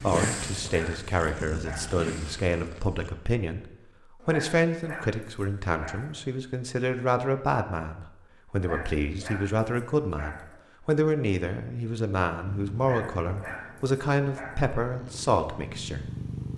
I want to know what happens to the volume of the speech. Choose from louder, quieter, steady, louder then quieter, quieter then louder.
steady.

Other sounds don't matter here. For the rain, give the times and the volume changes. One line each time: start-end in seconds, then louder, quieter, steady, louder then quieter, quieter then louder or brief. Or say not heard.
not heard.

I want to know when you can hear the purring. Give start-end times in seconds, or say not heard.
0.0-3.1, 12.4-16.5.